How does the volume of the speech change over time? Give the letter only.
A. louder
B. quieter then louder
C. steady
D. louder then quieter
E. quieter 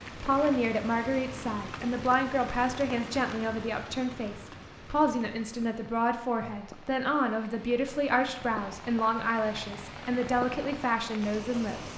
C.